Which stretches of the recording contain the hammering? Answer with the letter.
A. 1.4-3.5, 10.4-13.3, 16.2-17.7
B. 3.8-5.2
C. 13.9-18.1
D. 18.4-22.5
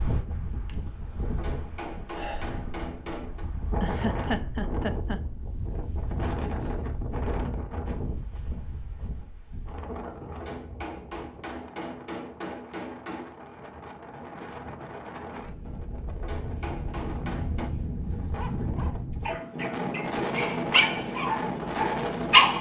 A.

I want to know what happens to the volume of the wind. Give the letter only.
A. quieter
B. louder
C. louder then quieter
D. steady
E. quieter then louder
E.